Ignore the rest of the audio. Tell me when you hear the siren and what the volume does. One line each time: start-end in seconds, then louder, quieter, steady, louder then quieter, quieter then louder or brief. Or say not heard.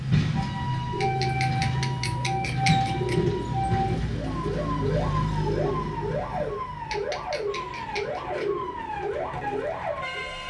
0.2-10.4 steady.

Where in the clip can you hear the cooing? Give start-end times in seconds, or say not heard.
0.9-9.7.